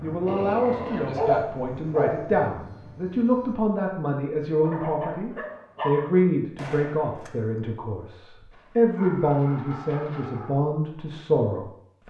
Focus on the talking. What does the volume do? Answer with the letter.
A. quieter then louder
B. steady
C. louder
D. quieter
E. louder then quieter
B.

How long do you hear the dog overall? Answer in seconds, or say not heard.
6 s.